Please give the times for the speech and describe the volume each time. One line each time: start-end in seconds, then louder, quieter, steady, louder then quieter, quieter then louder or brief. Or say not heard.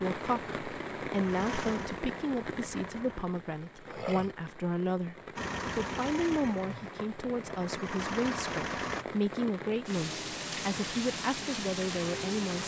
0.0-12.6 steady.